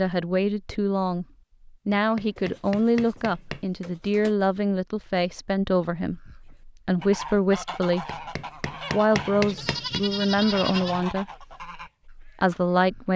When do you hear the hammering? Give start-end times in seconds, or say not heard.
1.9-3.6, 8.1-10.1.